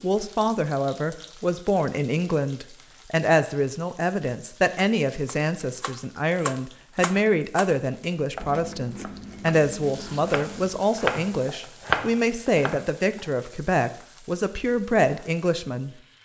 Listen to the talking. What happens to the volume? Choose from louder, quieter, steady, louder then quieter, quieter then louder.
steady.